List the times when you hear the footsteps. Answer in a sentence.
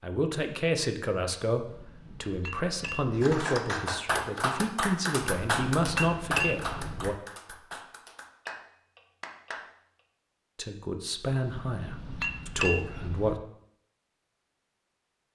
You can't hear the footsteps here.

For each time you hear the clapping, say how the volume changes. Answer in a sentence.
The clapping can be heard from 3.2 to 9.7 s, getting quieter.